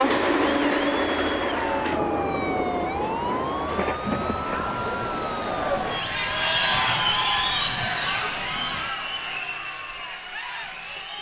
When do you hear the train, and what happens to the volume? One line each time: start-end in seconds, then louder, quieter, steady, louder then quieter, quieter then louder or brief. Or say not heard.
0.0-4.8 quieter.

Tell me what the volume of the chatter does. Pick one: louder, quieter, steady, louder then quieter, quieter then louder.
louder then quieter.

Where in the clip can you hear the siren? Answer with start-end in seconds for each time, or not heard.
1.5-8.9.